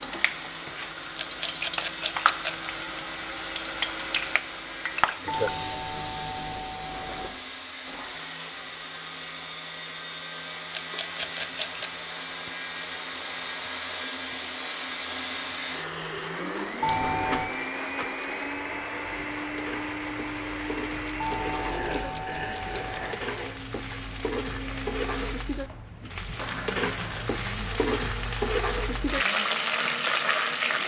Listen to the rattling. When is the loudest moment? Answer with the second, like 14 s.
2 s.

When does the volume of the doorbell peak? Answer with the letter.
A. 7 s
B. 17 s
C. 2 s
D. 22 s
B.